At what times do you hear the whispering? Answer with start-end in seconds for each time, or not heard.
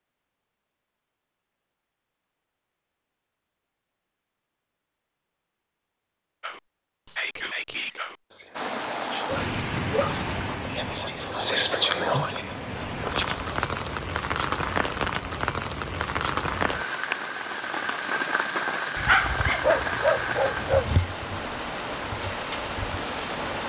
6.4-14.0.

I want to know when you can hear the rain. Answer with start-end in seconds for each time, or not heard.
8.6-23.6.